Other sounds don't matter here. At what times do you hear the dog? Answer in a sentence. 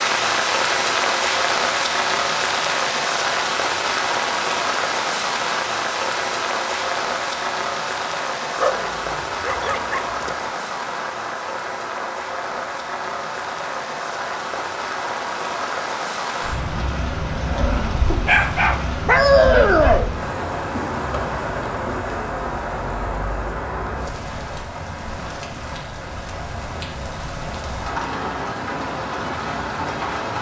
The dog can be heard from 8.6 to 10.5 s and from 18.1 to 20.1 s.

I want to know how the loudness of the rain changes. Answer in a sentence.
The volume of the rain goes down.